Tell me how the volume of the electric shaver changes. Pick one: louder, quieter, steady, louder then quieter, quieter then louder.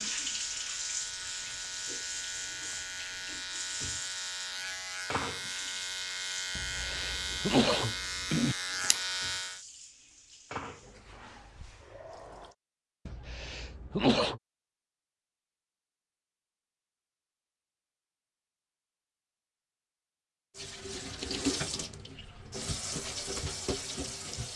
louder.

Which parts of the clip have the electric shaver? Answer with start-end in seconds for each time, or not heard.
0.0-9.7.